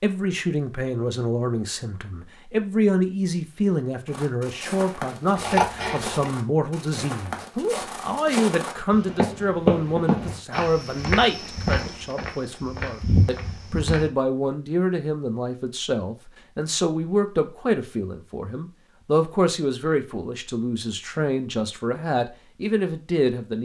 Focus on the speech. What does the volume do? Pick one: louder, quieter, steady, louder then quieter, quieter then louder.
steady.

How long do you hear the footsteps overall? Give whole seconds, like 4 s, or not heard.
10 s.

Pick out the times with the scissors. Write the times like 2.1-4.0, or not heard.
5.3-6.3.